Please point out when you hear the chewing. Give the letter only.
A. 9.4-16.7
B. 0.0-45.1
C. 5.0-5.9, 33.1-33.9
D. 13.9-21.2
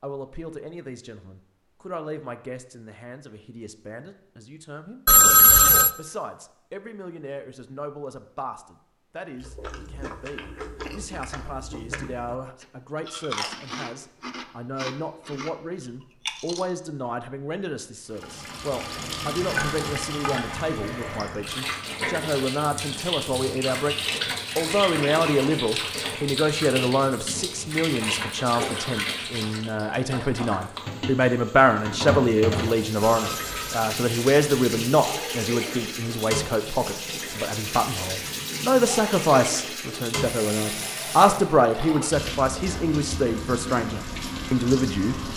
A.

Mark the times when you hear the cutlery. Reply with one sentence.
You can't hear the cutlery here.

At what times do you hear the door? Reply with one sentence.
The door can't be heard in this clip.